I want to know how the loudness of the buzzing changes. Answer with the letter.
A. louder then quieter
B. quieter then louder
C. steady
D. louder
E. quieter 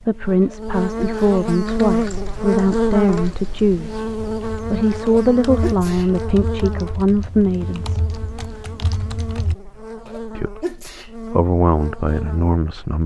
E.